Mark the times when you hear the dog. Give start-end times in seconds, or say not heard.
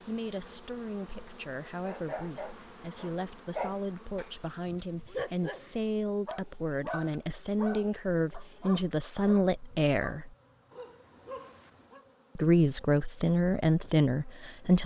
1.8-12.0.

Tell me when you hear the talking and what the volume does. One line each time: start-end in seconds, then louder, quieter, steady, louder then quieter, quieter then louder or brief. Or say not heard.
0.0-10.3 louder
12.3-14.8 brief.